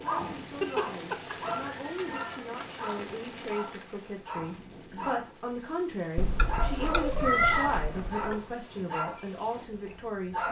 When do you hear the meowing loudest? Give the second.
7 s.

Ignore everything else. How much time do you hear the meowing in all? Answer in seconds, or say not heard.
4 s.